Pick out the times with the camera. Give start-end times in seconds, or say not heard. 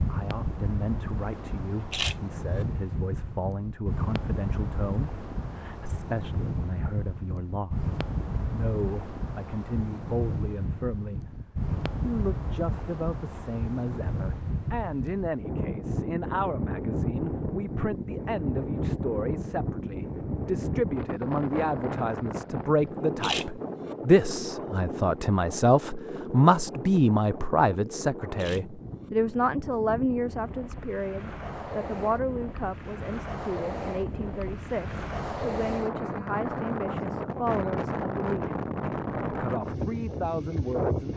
1.9-2.6, 23.2-23.9, 28.4-29.1.